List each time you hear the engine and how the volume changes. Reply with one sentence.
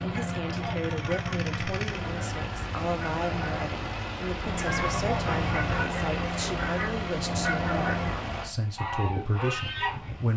The engine can be heard from 0.0 to 10.3 s, getting quieter.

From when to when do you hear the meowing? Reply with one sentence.
The meowing can be heard from 4.7 to 5.8 s.